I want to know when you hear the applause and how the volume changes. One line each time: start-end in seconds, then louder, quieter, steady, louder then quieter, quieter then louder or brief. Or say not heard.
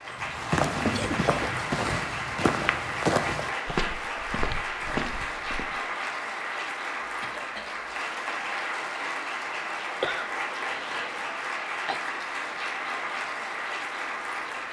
0.0-14.6 steady.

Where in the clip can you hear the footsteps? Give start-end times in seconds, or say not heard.
0.1-5.7.